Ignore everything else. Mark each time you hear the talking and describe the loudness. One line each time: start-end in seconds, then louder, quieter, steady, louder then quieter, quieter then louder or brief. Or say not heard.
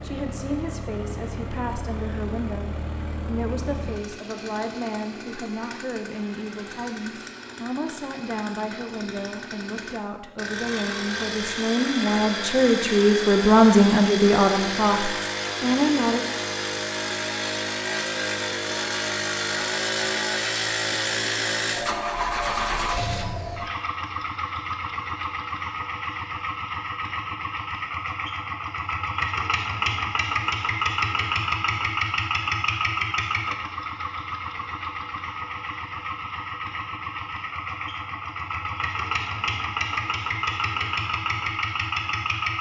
0.0-16.2 louder.